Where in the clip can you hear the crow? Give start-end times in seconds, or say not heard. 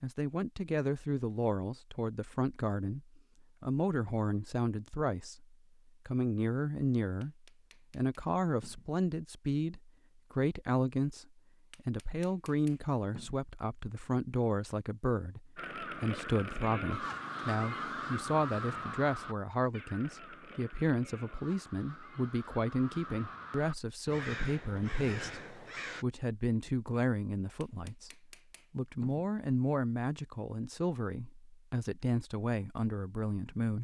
15.6-26.1.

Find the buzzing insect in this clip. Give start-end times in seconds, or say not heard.
not heard.